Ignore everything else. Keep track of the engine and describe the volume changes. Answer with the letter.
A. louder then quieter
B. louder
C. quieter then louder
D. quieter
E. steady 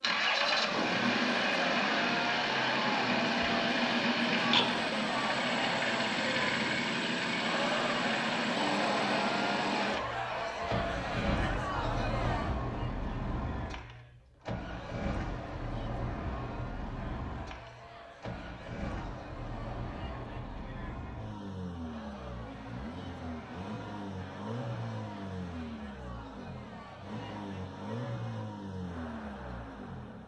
D.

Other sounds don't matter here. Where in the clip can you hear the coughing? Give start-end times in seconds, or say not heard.
not heard.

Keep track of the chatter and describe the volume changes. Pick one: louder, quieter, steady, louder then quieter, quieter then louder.
quieter.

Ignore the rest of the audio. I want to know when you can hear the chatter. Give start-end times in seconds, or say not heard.
0.1-30.2.